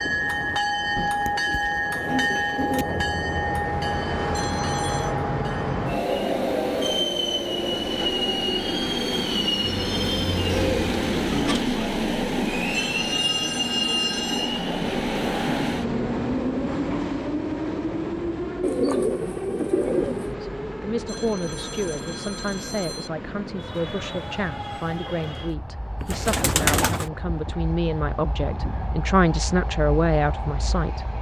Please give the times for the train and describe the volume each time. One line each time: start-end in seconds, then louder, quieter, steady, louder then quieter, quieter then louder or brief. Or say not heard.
0.0-31.1 quieter.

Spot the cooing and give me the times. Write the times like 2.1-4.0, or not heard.
0.9-2.9, 9.6-11.7, 18.6-20.4, 26.0-27.1.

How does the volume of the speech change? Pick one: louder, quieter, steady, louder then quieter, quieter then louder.
louder.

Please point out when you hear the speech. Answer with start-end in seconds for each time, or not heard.
20.2-31.1.